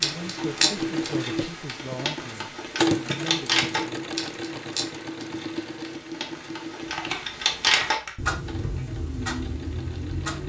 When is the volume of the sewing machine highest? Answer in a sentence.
The loudest moment of the sewing machine is at 3 seconds.